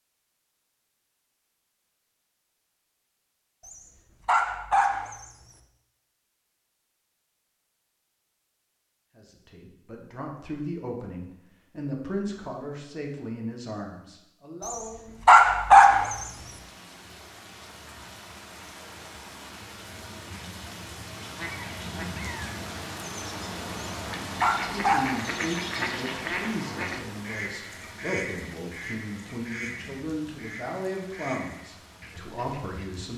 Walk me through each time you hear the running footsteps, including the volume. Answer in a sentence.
You can't hear the running footsteps here.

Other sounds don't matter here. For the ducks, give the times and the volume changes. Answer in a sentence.
You can hear the ducks from 21.1 to 33.0 s, getting louder then quieter.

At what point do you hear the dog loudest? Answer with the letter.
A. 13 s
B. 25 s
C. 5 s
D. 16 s
D.